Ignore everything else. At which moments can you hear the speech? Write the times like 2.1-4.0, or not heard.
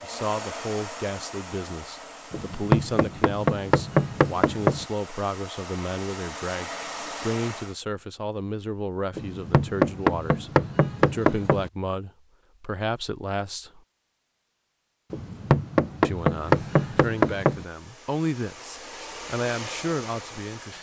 0.0-13.8, 16.0-20.7.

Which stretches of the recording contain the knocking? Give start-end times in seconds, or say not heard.
2.3-4.8, 9.2-11.7, 15.1-17.6.